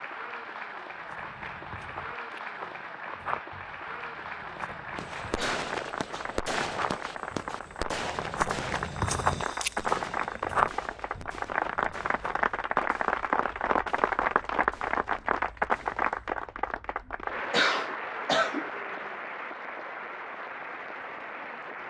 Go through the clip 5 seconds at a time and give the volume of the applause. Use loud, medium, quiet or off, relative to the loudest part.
medium, medium, loud, loud, medium.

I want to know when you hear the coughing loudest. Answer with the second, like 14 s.
18 s.